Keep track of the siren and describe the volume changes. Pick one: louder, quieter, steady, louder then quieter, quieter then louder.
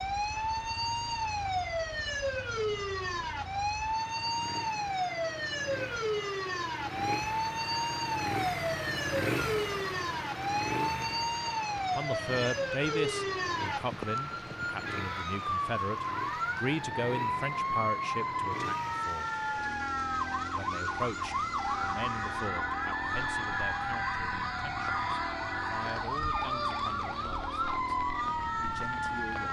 steady.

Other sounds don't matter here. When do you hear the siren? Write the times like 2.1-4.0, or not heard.
0.0-29.4.